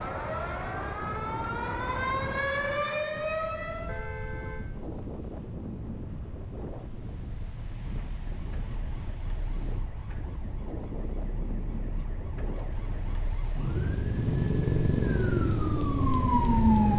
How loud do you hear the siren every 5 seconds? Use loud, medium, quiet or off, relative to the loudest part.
medium, quiet, medium, loud.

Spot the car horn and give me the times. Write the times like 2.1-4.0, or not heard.
3.9-4.7.